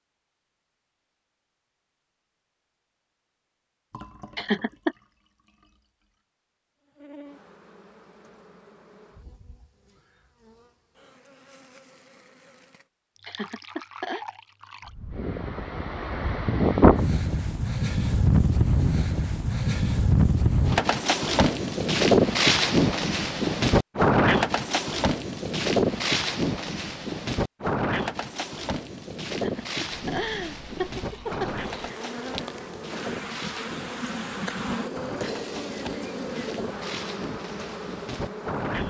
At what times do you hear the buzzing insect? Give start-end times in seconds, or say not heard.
6.8-12.8, 31.6-38.8.